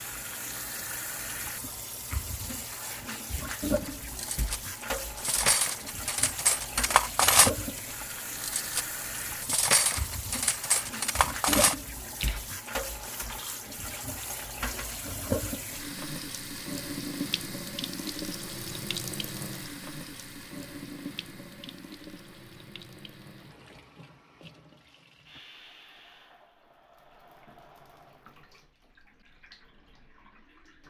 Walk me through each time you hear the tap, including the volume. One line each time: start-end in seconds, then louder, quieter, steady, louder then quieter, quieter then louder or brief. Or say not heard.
0.0-30.8 quieter.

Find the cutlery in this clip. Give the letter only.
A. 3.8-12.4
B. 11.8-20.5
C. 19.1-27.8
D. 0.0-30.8
A.